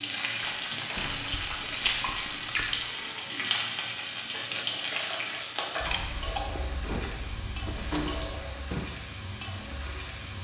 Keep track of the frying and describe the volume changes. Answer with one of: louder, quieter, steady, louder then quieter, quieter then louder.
steady.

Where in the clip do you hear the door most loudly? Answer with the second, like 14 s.
8 s.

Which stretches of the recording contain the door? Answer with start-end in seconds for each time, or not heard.
0.5-1.4, 6.8-8.9.